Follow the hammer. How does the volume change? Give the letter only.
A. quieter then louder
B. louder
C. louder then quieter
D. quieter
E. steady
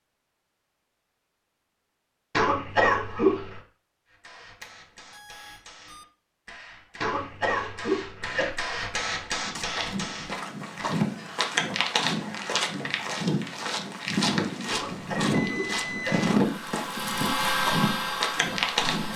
B.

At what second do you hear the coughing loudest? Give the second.
3 s.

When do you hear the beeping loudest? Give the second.
16 s.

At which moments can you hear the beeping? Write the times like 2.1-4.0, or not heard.
4.6-6.0, 15.3-16.1.